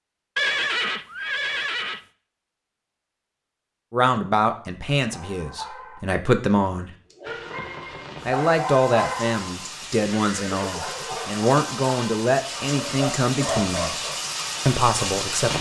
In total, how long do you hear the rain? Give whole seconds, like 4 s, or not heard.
8 s.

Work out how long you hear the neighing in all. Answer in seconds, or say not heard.
3 s.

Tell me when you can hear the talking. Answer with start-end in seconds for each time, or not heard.
3.9-6.9, 8.2-15.5.